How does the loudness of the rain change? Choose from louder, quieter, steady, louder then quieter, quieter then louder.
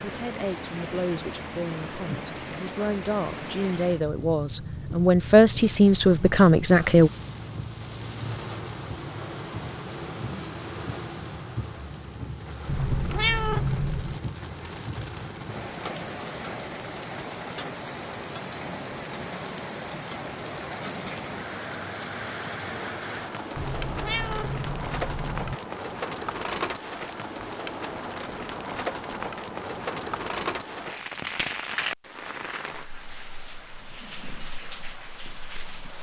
steady.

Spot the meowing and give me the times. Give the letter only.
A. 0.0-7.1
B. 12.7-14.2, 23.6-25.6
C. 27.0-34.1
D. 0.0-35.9
B.